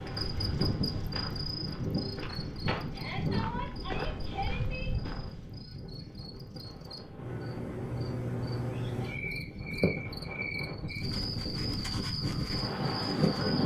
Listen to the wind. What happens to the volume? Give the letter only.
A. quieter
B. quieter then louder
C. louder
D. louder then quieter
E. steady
B.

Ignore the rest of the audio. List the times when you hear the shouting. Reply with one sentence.
The shouting can be heard from 2.9 to 4.9 s.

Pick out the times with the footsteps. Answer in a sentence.
You can hear the footsteps from 0.0 to 5.5 s.